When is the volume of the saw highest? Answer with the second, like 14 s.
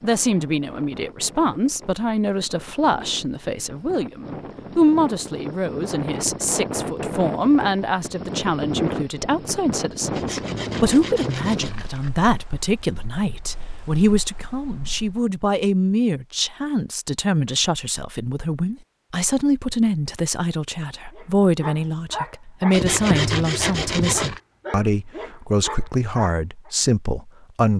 23 s.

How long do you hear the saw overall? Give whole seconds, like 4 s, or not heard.
4 s.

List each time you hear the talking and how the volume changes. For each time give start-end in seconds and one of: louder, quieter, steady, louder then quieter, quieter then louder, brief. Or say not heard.
0.0-27.7 steady.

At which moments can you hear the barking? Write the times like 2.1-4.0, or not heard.
21.1-26.7.